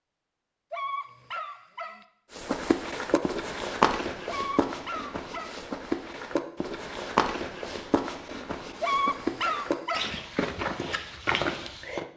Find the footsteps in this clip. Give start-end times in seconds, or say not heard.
2.4-12.1.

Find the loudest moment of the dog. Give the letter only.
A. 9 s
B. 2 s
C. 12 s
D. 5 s
A.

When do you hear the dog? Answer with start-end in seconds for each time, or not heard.
0.7-2.0, 4.2-5.6, 8.8-10.2.